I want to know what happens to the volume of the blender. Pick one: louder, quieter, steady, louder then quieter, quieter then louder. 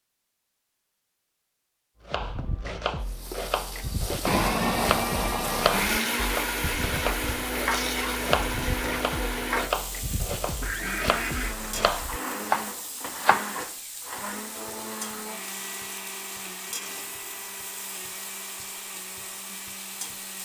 quieter.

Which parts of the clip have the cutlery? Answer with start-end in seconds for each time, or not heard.
not heard.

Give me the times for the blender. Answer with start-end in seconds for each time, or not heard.
4.2-20.4.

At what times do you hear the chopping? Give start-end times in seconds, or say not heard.
2.0-13.5.